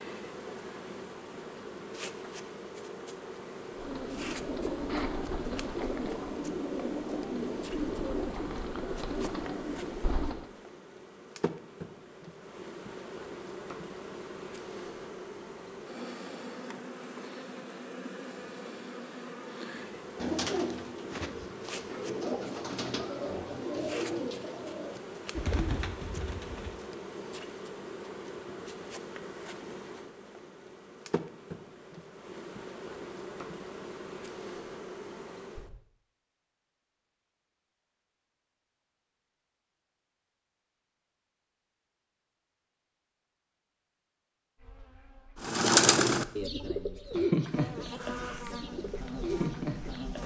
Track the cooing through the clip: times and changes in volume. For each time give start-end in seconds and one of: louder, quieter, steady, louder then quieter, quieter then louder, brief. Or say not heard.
3.8-10.5 steady
20.1-26.8 steady
45.4-50.2 quieter then louder.